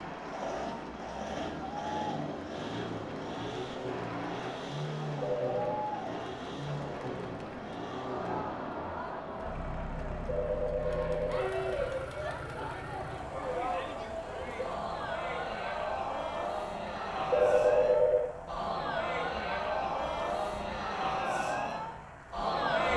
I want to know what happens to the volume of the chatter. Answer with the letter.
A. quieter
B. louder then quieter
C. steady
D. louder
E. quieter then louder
D.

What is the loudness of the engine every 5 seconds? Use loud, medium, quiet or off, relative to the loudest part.
loud, loud, medium, medium, medium.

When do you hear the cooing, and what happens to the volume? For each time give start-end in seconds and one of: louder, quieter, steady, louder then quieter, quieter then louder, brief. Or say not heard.
not heard.